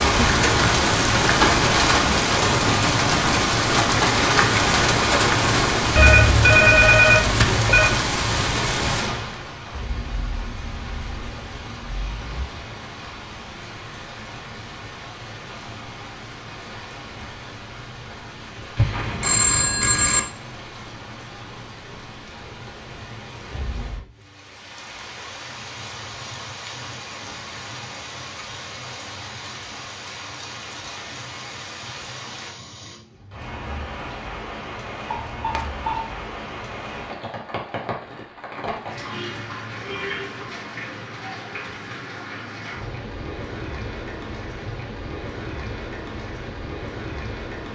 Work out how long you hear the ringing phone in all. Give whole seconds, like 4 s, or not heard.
4 s.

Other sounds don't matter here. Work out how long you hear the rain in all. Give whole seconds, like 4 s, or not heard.
48 s.